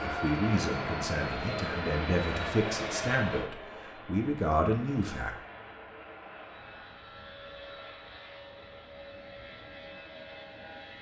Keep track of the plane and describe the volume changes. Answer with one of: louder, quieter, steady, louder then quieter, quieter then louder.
quieter.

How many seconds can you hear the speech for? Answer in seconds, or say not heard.
5 s.